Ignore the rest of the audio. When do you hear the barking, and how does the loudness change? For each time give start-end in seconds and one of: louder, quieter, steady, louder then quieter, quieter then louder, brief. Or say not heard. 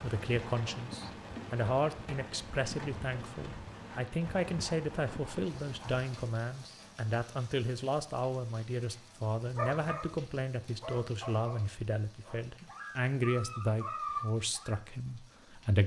9.6-14.7 quieter then louder.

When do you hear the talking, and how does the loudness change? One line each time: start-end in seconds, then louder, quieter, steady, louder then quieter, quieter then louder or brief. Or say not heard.
0.0-15.8 steady.